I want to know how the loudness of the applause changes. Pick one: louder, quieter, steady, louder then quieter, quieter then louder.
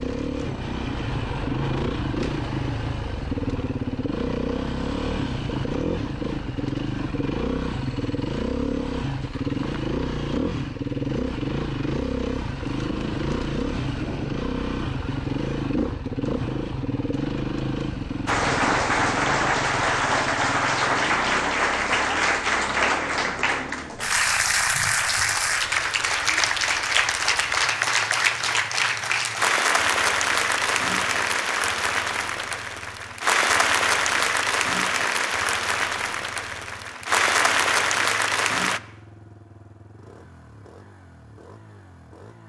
steady.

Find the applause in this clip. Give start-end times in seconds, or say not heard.
18.2-38.8.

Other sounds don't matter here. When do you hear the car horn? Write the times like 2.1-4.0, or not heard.
not heard.